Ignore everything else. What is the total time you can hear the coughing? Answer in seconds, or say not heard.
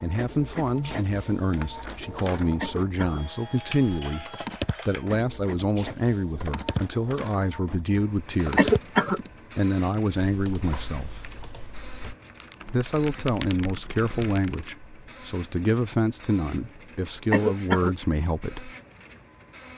2 s.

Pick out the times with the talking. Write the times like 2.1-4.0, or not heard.
0.0-8.8, 9.6-11.2, 12.7-18.8.